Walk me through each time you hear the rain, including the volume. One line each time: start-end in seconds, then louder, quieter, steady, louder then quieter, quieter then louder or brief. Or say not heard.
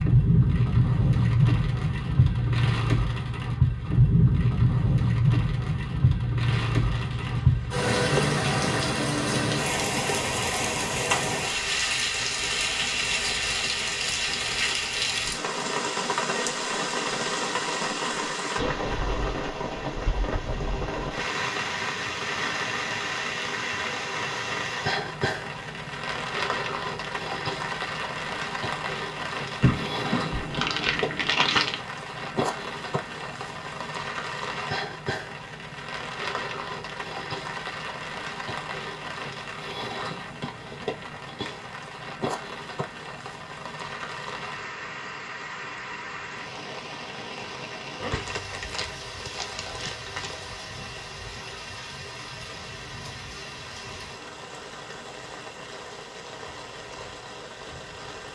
0.0-58.2 quieter.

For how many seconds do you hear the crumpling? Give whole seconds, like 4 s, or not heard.
6 s.